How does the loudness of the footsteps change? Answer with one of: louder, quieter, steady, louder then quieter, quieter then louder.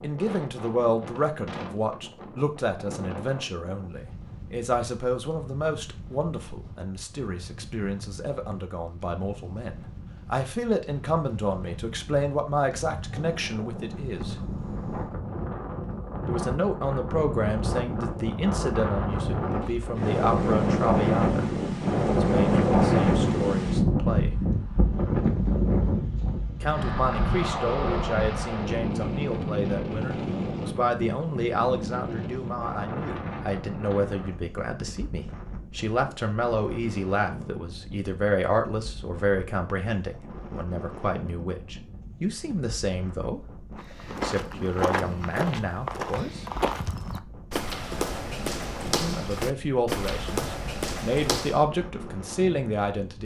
steady.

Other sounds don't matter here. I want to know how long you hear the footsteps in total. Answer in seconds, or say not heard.
8 s.